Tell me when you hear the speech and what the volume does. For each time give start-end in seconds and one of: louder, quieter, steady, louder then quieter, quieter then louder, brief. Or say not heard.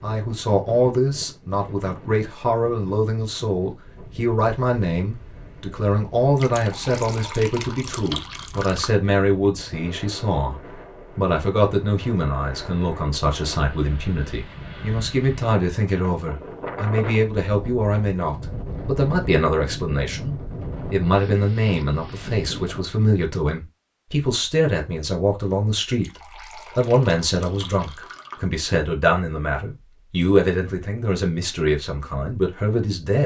0.0-33.2 steady.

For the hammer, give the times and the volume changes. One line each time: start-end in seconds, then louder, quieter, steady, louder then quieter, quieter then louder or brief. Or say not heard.
not heard.